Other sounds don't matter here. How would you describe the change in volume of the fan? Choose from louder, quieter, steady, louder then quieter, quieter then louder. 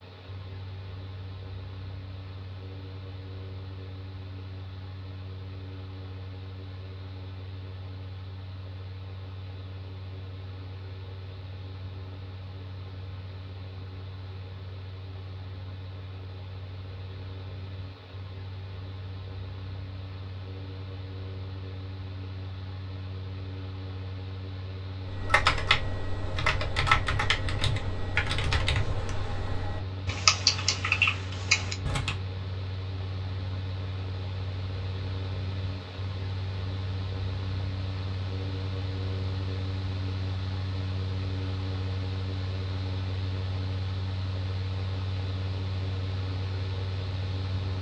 louder.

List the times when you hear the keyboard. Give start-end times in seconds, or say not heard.
25.1-32.2.